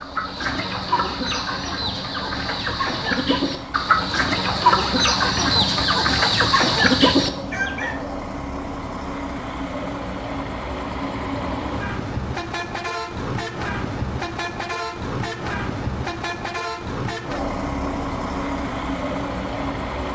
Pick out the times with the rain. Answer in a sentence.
You can't hear the rain here.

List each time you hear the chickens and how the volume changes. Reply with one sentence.
The chickens can be heard from 0.0 to 8.0 s, getting louder.